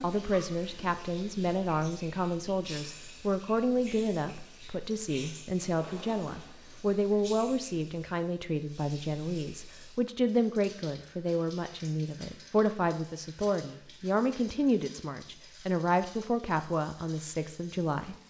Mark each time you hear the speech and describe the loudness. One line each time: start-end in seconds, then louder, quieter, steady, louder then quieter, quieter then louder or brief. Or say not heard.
0.0-18.1 steady.